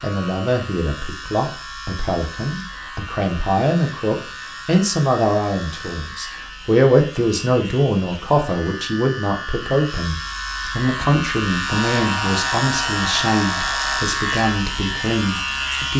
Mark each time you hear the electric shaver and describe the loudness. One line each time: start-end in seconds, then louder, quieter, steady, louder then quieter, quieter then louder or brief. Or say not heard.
0.0-15.9 louder.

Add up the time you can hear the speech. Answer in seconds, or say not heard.
16 s.